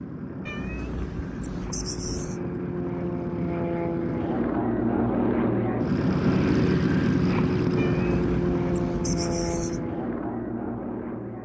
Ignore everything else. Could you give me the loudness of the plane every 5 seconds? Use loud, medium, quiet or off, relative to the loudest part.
medium, loud, medium.